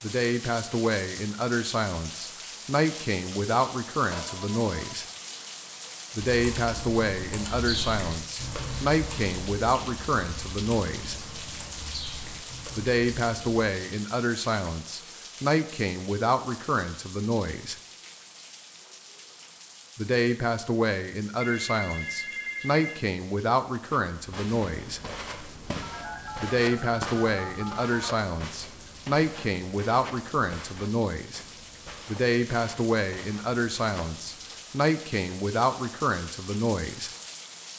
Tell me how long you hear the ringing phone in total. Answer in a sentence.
You can hear the ringing phone for 5 seconds altogether.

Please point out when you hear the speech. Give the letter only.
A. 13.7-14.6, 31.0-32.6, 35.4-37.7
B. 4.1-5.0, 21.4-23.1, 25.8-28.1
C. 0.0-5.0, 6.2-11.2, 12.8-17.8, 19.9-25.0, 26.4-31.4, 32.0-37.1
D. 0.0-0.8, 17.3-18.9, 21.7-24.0
C.